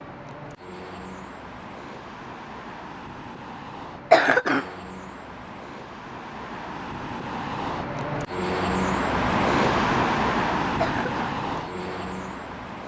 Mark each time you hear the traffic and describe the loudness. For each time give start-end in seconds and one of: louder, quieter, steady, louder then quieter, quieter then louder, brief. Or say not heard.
0.0-12.8 louder.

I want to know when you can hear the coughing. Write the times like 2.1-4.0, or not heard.
4.1-4.7, 10.8-11.3.